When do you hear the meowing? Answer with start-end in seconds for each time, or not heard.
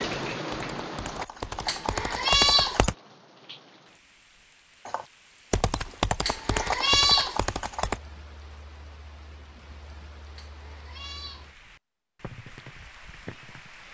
1.6-2.8, 6.2-7.4, 10.3-11.5.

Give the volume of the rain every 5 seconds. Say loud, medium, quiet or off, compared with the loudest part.
loud, quiet, medium.